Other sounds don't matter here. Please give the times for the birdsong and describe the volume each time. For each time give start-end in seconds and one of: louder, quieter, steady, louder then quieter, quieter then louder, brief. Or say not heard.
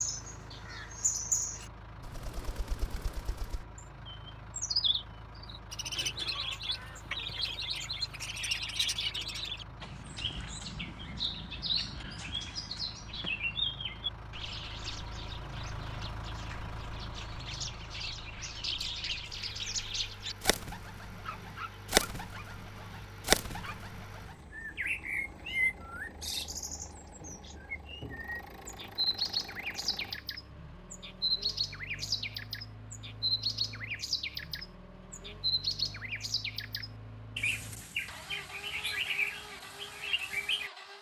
0.0-40.7 steady.